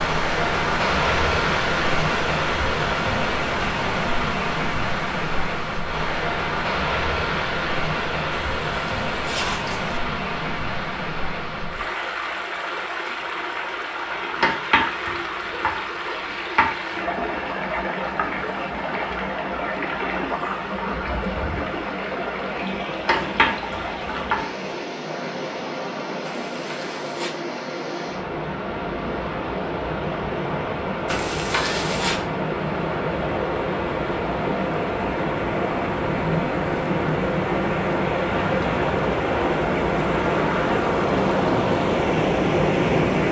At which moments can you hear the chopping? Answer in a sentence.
The chopping can be heard from 14.4 to 16.9 s and from 23.1 to 24.4 s.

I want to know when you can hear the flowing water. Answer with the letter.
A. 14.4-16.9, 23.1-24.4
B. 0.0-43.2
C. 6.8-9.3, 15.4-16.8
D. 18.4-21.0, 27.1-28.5
B.